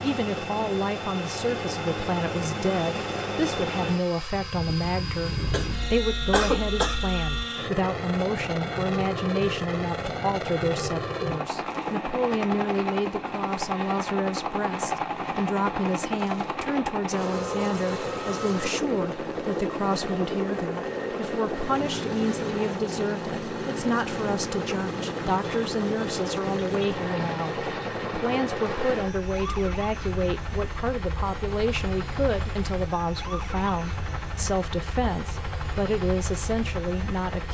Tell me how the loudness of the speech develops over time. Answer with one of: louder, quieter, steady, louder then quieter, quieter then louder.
steady.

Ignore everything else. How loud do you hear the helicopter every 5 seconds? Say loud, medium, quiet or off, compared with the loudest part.
loud, loud, loud, loud, loud, loud, medium, medium.